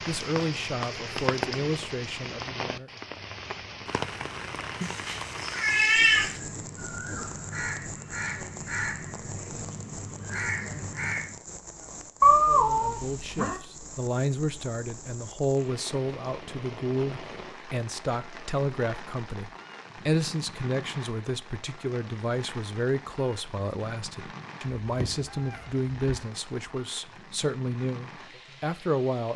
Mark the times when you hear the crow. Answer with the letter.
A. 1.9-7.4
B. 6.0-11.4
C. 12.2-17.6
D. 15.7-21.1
B.